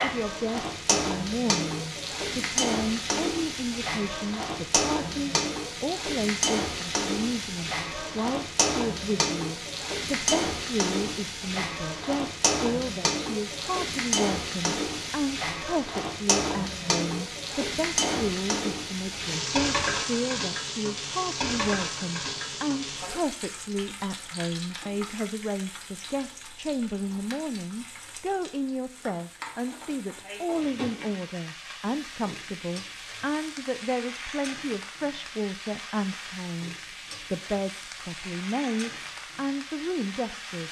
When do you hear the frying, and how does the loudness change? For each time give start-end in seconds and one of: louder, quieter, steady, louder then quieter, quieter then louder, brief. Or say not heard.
0.0-40.6 quieter.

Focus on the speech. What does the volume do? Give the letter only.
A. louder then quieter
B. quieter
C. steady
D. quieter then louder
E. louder
C.